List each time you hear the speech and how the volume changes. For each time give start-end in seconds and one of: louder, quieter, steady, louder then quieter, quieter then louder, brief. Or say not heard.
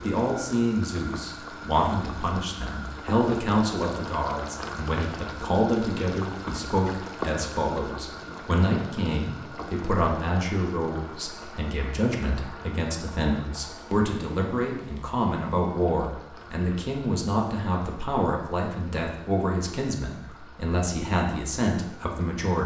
0.0-22.6 steady.